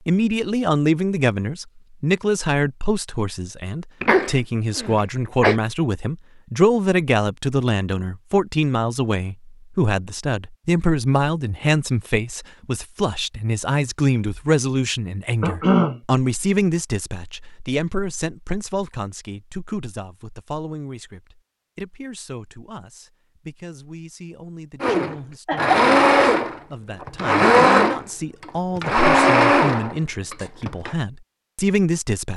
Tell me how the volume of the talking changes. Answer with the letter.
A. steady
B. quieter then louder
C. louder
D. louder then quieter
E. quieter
B.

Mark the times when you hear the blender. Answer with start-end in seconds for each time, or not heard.
24.8-30.9.